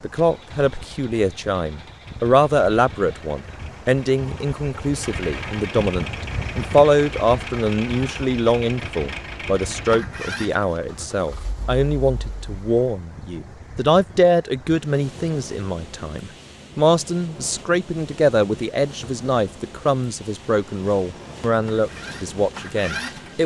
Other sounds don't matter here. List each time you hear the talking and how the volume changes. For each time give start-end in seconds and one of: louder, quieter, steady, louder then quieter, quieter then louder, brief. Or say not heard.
0.0-23.4 steady.